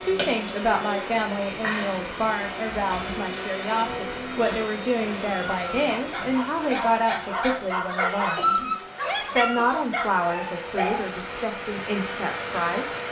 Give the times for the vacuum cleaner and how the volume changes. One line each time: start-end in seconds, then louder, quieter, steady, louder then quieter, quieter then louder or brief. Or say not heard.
0.0-13.0 quieter then louder.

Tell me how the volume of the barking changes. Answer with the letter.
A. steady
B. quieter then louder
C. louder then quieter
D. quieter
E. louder
C.